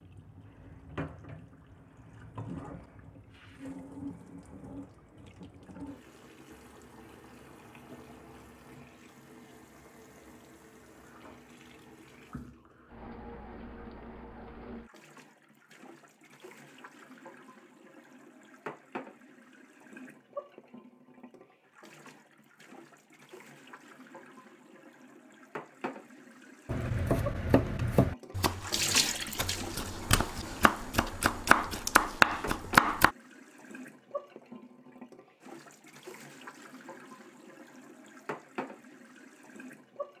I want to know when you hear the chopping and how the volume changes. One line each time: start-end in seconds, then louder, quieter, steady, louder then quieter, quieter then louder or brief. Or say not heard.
26.6-33.1 quieter then louder.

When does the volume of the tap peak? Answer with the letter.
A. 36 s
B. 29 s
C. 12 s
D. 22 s
B.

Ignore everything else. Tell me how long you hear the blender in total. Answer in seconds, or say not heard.
not heard.